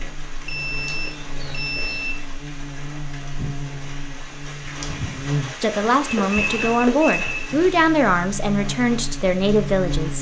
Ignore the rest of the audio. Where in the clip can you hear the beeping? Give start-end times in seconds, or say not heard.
0.5-2.1, 6.0-7.5.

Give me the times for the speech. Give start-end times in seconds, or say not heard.
5.6-10.1.